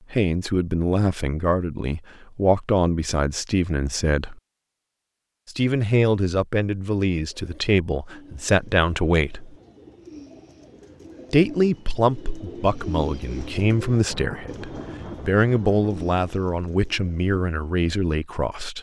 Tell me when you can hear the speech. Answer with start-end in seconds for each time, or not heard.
0.1-4.3, 5.5-9.6, 11.3-18.7.